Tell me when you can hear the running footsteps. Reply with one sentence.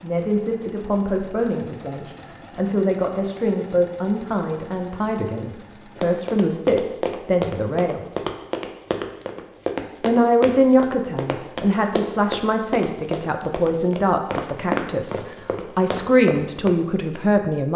You can hear the running footsteps from 6.0 to 16.7 s.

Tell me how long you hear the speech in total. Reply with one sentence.
You can hear the speech for 16 seconds altogether.